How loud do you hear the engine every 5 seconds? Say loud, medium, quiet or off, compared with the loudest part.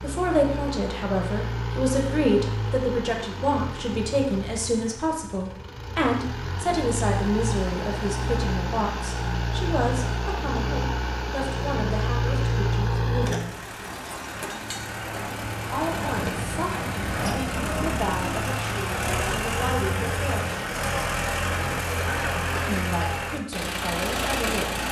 medium, loud, loud, loud, loud.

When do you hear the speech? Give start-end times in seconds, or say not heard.
0.0-13.6, 15.7-20.6, 22.6-24.8.